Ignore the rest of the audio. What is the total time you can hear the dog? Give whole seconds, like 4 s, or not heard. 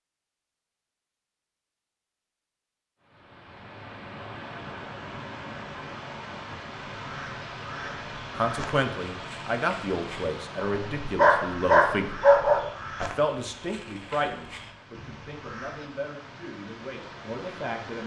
2 s.